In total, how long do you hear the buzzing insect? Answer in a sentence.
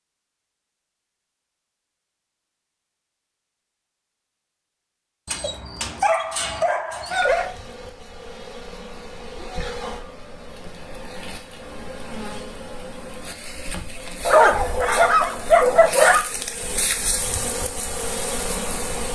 You can hear the buzzing insect for 12 seconds altogether.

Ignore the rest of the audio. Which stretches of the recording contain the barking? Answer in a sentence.
The barking can be heard from 5.2 to 7.5 s and from 14.2 to 16.2 s.